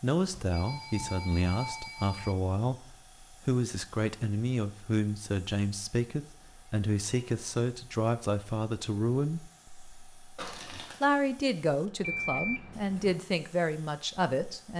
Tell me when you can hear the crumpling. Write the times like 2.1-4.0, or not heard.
10.3-11.0.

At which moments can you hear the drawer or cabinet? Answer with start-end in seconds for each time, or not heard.
not heard.